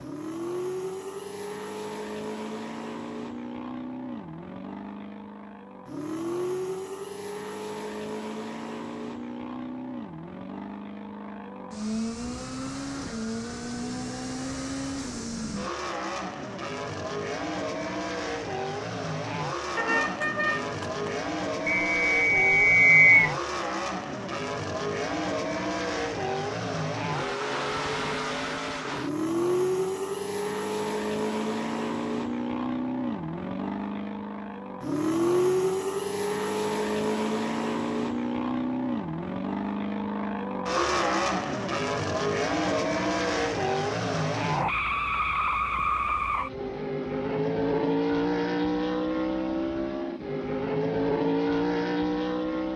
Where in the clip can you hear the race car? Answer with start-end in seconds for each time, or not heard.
0.0-52.7.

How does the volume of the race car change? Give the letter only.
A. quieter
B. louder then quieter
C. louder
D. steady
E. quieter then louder
C.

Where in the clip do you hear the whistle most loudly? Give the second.
23 s.